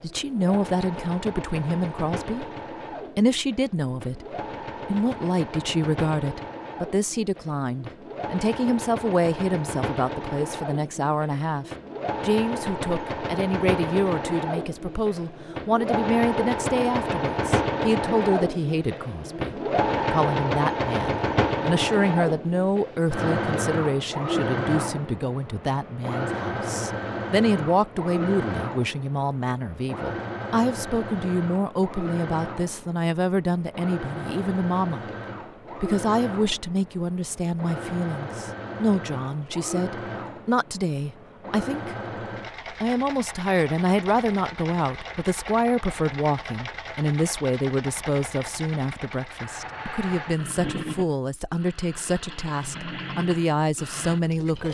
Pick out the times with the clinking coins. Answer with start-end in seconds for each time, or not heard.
not heard.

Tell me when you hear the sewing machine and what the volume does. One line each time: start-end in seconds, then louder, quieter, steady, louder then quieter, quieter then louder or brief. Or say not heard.
0.0-54.6 louder then quieter.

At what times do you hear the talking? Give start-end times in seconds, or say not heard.
0.0-2.5, 3.1-35.0, 35.8-42.0, 42.8-54.6.